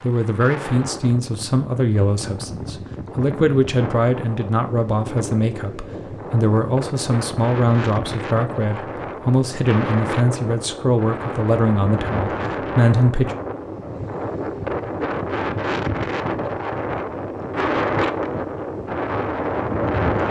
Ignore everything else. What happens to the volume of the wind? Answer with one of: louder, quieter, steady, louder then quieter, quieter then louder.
louder.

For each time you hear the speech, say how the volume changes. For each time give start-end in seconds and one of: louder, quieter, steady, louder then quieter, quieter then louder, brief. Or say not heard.
0.0-13.3 steady.